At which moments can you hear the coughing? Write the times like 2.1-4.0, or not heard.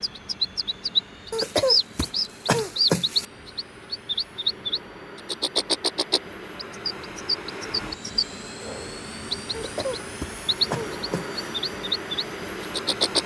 1.3-3.2, 9.5-11.4.